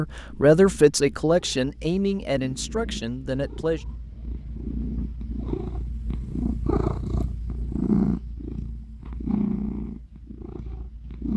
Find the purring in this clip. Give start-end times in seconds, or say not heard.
0.0-11.3.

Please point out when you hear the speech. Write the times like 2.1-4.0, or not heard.
0.0-3.9.